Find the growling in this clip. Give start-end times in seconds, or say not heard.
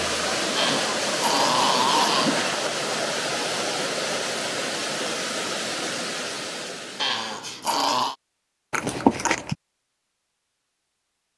0.6-2.5, 7.0-8.2.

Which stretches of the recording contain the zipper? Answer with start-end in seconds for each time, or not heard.
0.4-2.4, 8.7-9.6.